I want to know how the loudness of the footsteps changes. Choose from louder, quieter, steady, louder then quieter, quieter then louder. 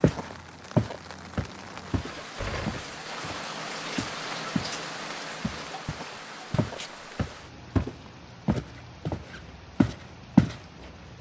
quieter then louder.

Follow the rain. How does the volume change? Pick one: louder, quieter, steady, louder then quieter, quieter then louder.
louder then quieter.